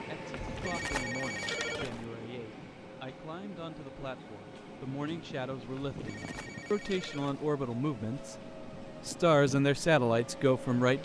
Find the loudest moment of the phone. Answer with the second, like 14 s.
2 s.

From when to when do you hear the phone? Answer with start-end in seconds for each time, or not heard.
0.3-2.0, 5.8-7.5.